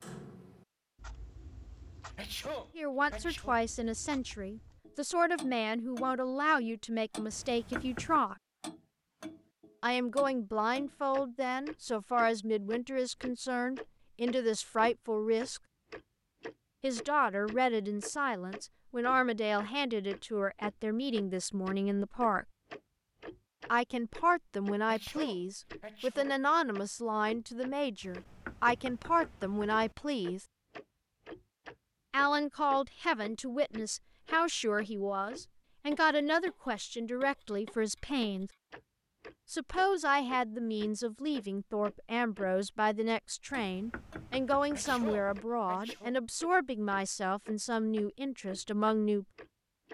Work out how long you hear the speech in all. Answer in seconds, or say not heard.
40 s.